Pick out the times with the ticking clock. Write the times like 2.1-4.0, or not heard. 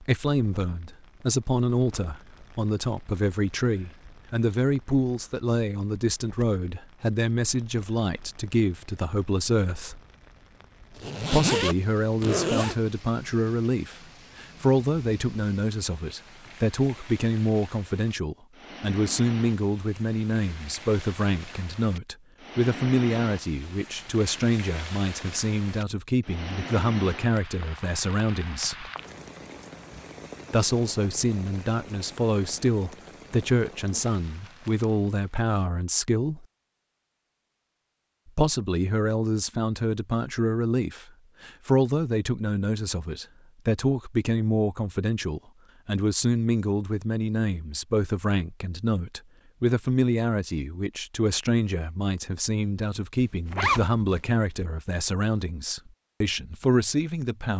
not heard.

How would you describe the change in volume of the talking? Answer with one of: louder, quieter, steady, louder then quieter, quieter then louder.
steady.